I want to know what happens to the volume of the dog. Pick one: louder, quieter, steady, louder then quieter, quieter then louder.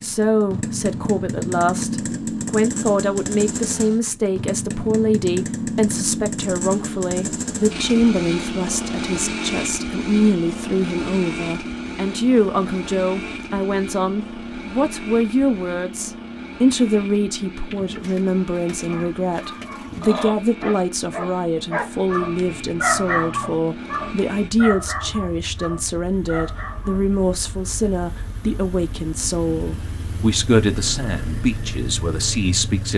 louder then quieter.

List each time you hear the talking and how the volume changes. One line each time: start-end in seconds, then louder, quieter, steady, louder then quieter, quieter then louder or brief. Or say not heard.
0.0-32.9 steady.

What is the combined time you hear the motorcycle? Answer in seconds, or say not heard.
33 s.